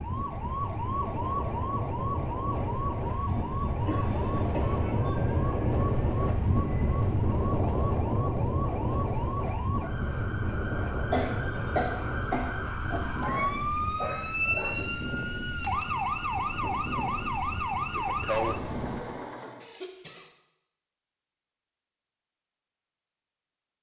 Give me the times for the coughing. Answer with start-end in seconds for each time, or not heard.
3.9-4.8, 11.1-13.0, 19.6-20.3.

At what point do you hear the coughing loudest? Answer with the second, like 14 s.
12 s.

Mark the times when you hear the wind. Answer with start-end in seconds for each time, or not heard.
0.0-19.1.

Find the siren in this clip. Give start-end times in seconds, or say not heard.
0.0-19.7.